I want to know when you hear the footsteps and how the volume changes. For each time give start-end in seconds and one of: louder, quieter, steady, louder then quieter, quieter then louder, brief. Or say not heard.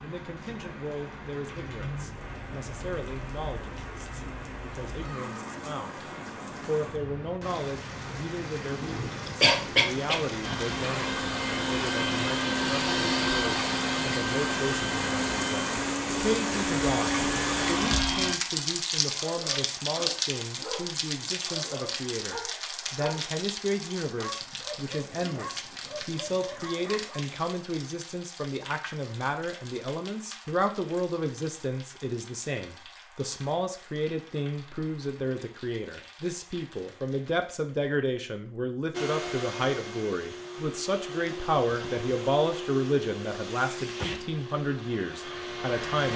not heard.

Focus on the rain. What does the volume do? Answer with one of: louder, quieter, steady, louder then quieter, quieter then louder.
louder then quieter.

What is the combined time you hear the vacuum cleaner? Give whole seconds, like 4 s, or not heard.
15 s.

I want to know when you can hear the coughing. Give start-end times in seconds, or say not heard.
8.7-10.2.